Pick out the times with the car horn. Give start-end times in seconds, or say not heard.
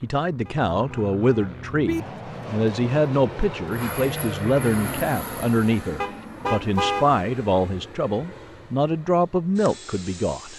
0.5-2.0, 6.0-7.2.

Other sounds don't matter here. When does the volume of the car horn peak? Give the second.
7 s.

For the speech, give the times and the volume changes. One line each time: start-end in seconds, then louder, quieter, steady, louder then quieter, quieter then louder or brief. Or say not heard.
0.0-10.5 steady.